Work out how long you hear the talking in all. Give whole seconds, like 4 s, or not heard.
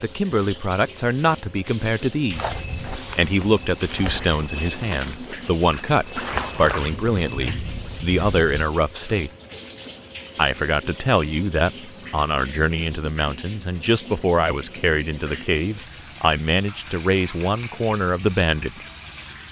18 s.